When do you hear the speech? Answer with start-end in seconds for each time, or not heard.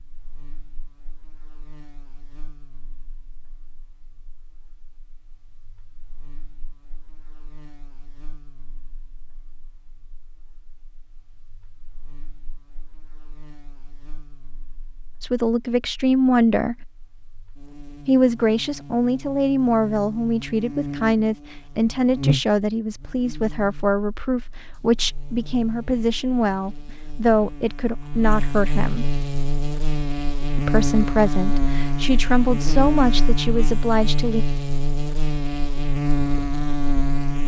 15.2-16.8, 18.1-29.1, 30.6-34.5.